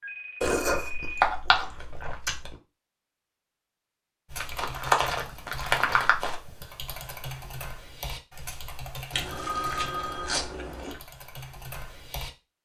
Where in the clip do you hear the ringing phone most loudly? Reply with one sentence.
The volume of the ringing phone peaks at 10 seconds.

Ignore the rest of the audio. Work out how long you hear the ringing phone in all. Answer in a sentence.
The ringing phone can be heard for 3 seconds in total.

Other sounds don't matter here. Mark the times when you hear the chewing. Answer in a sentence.
You can hear the chewing from 0.4 to 2.5 s, from 4.3 to 6.3 s and from 9.1 to 11.0 s.